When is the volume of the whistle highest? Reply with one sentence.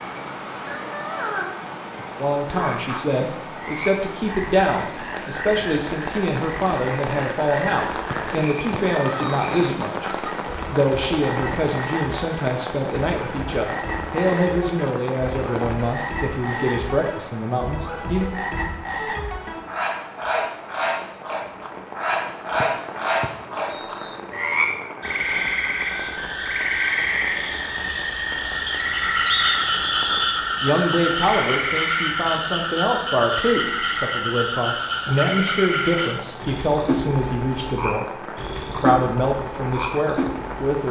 The volume of the whistle peaks at 29 seconds.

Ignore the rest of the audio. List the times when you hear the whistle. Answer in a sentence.
You can hear the whistle from 8.1 to 9.4 s, from 22.6 to 24.2 s and from 28.6 to 30.4 s.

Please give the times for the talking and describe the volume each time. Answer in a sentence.
The talking can be heard from 2.1 to 18.3 s, at a steady volume; and from 30.6 to 40.8 s, at a steady volume.